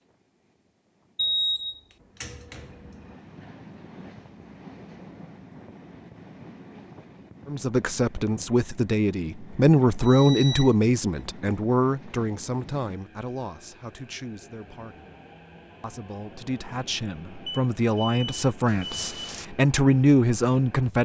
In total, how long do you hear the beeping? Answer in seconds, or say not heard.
5 s.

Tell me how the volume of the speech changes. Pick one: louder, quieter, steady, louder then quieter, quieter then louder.
quieter then louder.